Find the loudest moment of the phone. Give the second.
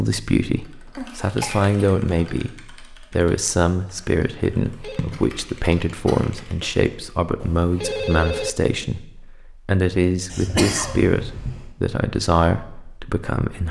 8 s.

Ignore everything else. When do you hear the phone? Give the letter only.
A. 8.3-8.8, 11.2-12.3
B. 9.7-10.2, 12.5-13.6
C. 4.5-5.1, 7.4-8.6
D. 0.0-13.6
C.